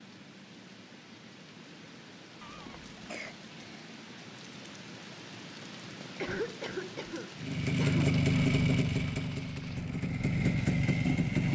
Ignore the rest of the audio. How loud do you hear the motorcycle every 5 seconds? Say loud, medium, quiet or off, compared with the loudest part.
off, loud, loud.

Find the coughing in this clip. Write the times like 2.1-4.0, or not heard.
2.4-4.0, 6.2-8.1.